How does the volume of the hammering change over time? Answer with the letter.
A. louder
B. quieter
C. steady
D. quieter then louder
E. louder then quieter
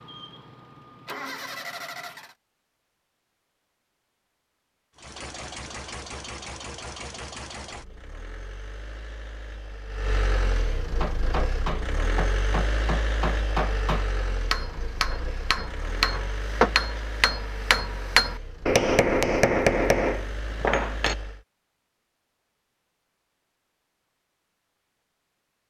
A.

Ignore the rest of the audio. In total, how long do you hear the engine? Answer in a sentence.
You can hear the engine for 19 seconds altogether.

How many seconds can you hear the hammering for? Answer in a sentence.
You can hear the hammering for 10 seconds altogether.